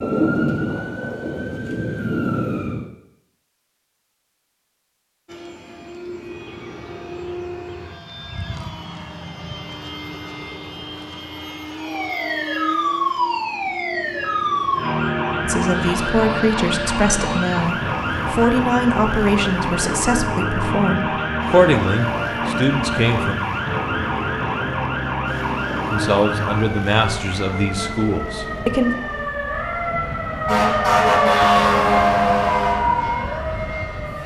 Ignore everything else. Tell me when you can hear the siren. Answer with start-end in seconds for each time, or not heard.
0.0-2.9, 11.8-34.2.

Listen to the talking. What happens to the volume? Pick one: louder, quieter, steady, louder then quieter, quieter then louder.
steady.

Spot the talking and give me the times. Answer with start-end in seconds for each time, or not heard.
15.4-23.4, 25.9-28.9.